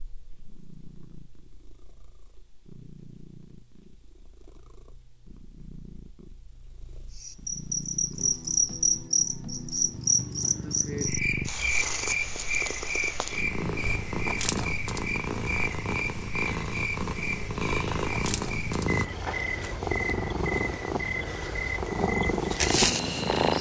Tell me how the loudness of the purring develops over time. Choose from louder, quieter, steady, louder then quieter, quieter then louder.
louder.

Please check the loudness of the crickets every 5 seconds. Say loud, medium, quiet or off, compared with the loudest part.
off, loud, loud, medium, medium.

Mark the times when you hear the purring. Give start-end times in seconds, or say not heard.
0.0-23.5.